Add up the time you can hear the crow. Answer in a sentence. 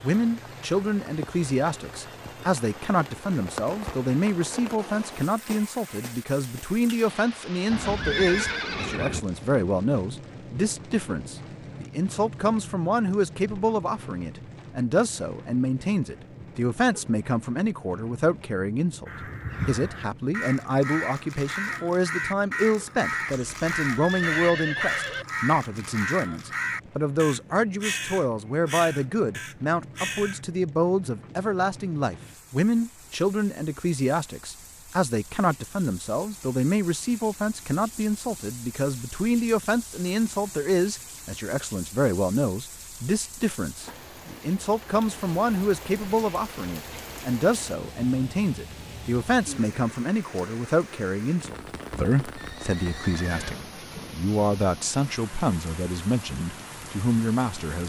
You can hear the crow for 11 seconds altogether.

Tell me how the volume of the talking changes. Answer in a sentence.
The volume of the talking stays about the same.